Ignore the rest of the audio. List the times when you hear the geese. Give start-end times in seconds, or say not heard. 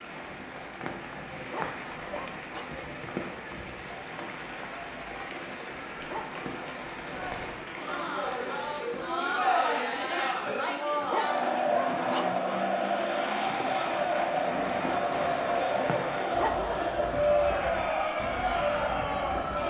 not heard.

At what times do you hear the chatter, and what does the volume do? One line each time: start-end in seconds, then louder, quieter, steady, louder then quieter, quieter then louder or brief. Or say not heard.
0.0-19.6 louder.